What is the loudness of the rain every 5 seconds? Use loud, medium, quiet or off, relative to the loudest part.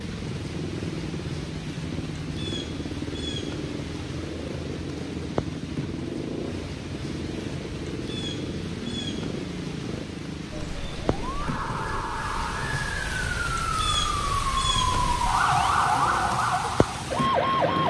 medium, medium, loud, loud.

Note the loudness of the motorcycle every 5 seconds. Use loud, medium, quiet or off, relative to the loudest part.
loud, loud, medium, loud.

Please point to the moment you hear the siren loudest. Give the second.
16 s.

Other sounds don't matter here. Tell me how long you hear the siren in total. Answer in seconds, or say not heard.
7 s.